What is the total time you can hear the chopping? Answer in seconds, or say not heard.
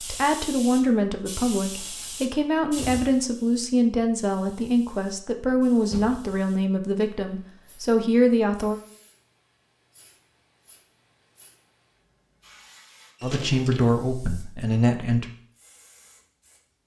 not heard.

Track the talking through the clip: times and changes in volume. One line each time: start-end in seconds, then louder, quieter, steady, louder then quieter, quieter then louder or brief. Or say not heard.
0.0-8.8 steady
13.2-15.2 brief.